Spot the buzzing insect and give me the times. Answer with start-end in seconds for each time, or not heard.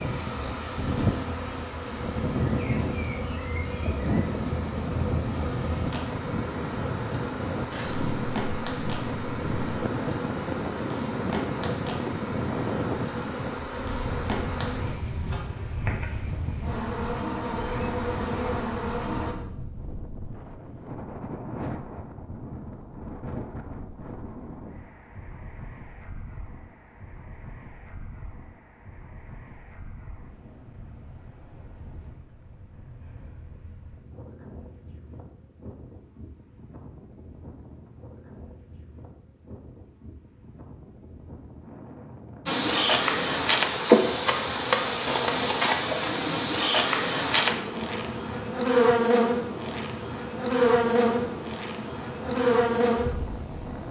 0.0-19.4, 42.5-53.8.